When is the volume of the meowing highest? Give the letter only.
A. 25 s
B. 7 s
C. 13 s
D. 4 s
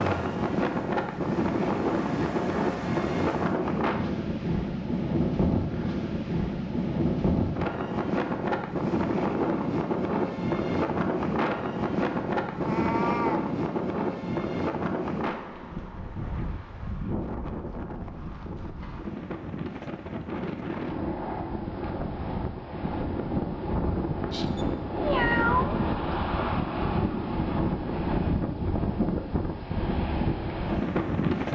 A.